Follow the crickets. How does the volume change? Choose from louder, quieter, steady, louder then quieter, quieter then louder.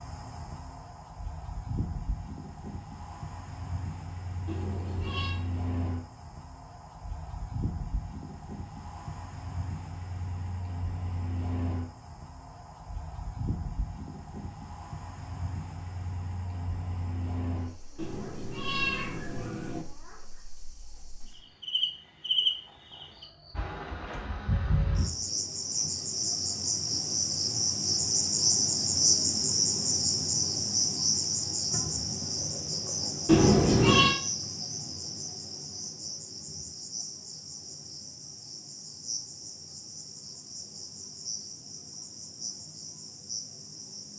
louder then quieter.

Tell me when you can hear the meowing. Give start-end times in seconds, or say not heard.
4.5-5.4, 17.9-19.9, 33.2-34.1.